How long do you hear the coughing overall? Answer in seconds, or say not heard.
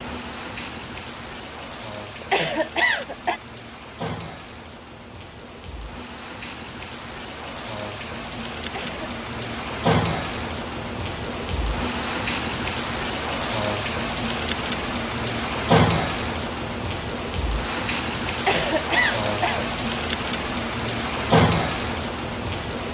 3 s.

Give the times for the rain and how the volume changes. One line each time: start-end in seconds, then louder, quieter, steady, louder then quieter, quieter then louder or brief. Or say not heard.
0.0-22.8 louder.